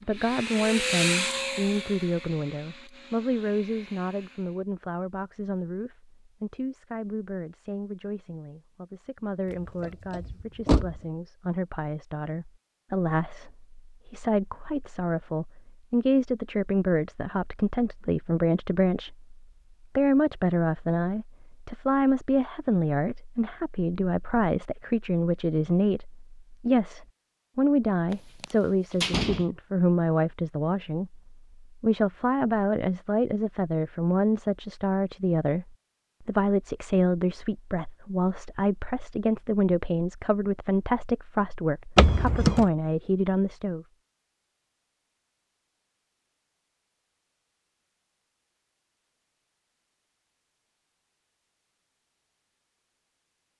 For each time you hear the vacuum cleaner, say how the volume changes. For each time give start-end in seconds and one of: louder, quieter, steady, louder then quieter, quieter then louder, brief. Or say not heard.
0.0-4.6 quieter.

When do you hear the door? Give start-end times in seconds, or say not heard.
9.5-11.1, 28.1-29.4, 42.0-42.6.